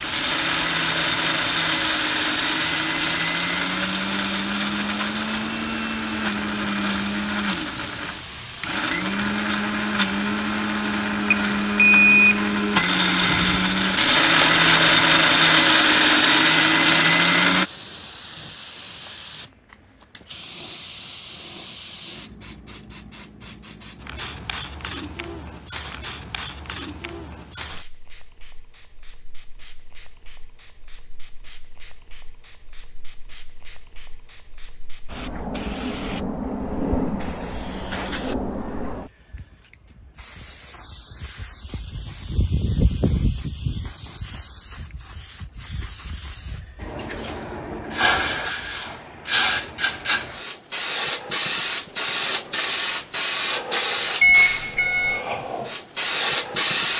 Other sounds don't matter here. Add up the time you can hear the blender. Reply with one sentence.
The blender can be heard for 18 seconds in total.